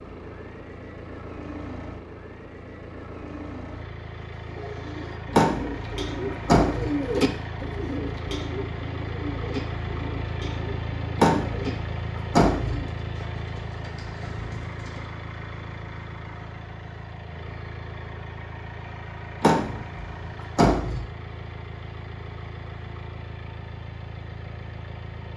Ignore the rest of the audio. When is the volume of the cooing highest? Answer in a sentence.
The volume of the cooing peaks at 7 seconds.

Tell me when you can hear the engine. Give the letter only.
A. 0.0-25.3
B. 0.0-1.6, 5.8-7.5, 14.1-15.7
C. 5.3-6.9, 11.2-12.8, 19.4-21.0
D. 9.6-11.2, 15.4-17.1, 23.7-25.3
A.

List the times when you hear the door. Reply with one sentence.
You can hear the door from 5.3 to 6.9 s, from 11.2 to 12.8 s and from 19.4 to 21.0 s.